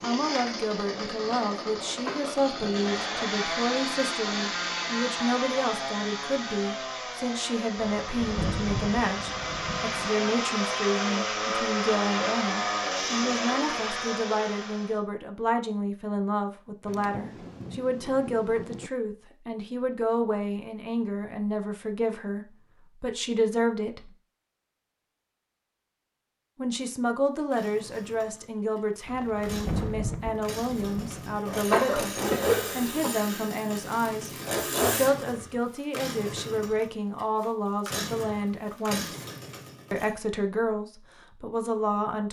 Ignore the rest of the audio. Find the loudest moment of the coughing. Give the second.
32 s.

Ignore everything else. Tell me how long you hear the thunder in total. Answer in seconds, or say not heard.
7 s.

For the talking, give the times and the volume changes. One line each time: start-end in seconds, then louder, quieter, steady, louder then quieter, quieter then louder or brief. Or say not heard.
0.0-24.1 steady
26.6-39.2 steady
39.9-42.2 brief.